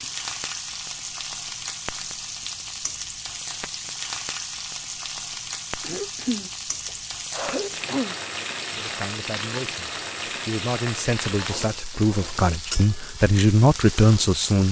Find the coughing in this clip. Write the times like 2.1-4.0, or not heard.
5.8-8.2.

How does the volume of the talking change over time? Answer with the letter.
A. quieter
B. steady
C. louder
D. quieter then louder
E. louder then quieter
C.